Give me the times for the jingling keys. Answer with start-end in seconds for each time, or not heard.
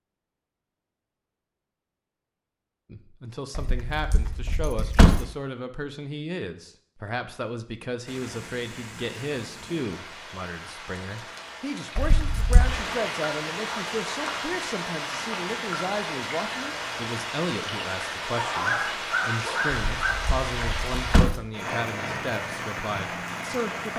3.5-5.2, 11.9-12.8, 19.9-21.4.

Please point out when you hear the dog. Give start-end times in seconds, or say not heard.
18.4-20.1.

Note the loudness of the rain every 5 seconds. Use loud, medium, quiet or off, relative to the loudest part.
off, medium, loud, loud, loud.